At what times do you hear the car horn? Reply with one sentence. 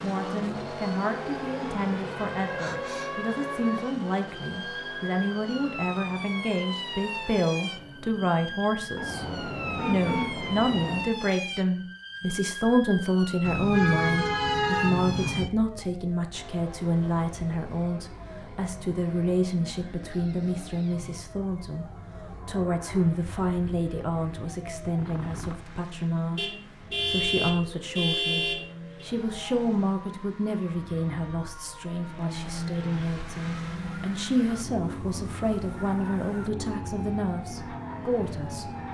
You can hear the car horn from 8.9 to 11.1 s, from 13.4 to 15.4 s and from 26.4 to 29.1 s.